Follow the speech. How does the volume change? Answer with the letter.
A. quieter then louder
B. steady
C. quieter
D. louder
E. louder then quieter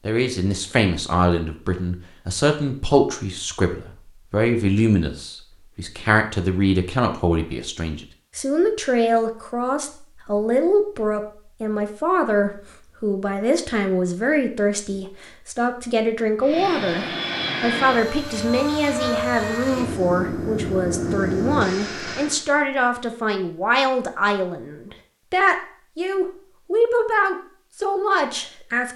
B.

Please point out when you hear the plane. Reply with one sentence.
The plane can be heard from 16.4 to 22.4 s.